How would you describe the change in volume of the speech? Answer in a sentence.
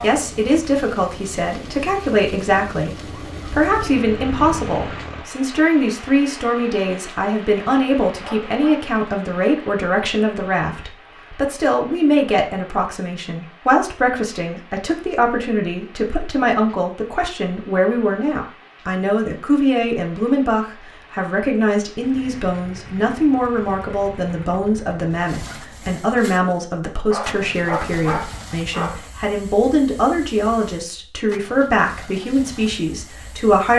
The loudness of the speech stays about the same.